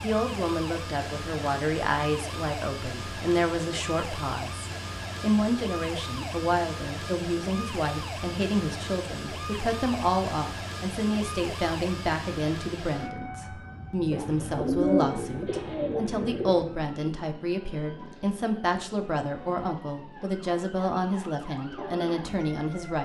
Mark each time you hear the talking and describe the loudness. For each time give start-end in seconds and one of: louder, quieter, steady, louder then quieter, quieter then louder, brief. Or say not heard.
0.0-22.9 steady.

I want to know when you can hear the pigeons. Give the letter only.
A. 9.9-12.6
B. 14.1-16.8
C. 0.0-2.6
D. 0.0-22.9
B.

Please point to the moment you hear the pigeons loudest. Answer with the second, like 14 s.
15 s.